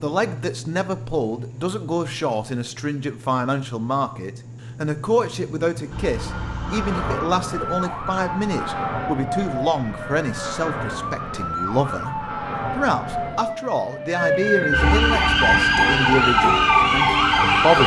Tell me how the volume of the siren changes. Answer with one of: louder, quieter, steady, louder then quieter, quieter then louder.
louder.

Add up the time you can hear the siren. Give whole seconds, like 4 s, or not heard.
12 s.